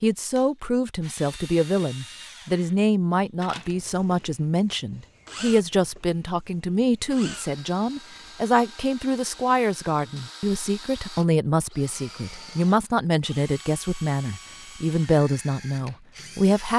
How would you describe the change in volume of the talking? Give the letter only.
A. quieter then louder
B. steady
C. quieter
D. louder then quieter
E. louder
B.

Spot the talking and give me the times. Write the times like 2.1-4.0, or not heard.
0.0-16.7.